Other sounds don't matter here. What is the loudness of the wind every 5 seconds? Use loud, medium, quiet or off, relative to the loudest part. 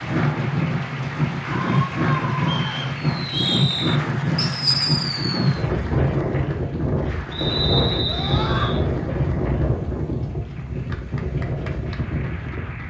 loud, loud, medium.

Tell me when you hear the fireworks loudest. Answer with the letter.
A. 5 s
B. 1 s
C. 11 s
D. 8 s
A.